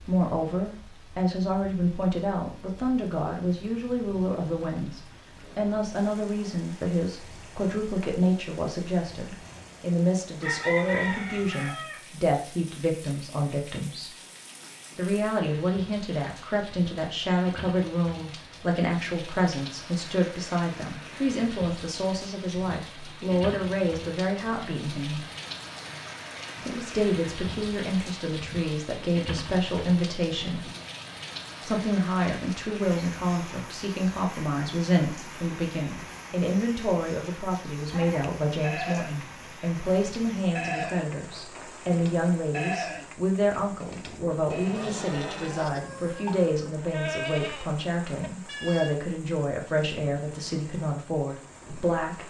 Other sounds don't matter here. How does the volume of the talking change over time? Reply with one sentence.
The loudness of the talking stays about the same.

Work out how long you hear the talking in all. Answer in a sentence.
You can hear the talking for 49 seconds altogether.